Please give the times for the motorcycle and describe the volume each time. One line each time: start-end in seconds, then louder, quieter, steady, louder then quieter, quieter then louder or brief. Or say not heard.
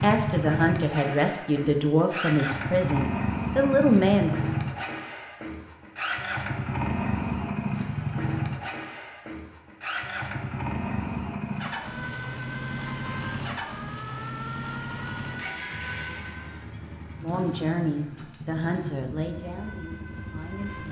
0.0-20.8 quieter.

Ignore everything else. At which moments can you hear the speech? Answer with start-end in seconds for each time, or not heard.
0.0-4.4, 17.2-20.8.